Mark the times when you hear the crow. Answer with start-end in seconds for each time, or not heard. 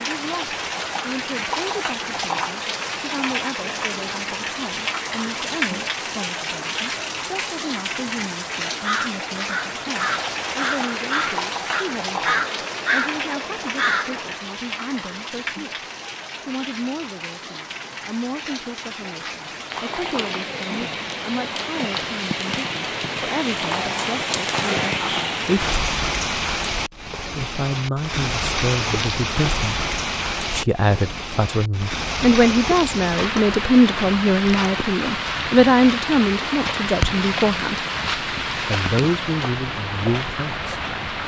8.7-14.3.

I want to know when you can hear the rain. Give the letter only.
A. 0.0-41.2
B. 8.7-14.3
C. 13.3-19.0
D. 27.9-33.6
A.